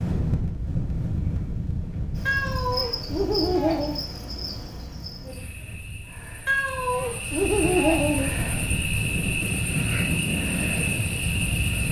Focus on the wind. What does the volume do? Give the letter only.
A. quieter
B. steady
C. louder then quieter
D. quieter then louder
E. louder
D.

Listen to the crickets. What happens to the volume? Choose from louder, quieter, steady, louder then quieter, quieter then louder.
quieter then louder.